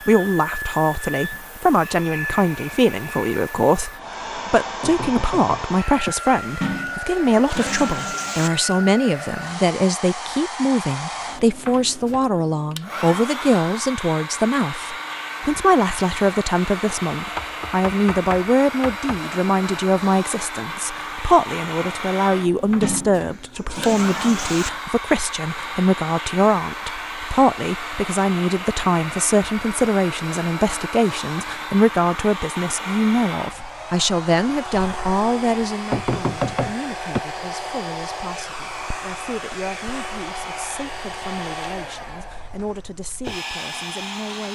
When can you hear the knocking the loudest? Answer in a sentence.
The volume of the knocking peaks at 36 seconds.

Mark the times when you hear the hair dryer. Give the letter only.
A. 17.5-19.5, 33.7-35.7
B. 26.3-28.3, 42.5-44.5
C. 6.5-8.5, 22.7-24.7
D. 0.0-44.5
D.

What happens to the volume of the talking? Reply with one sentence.
The loudness of the talking goes down.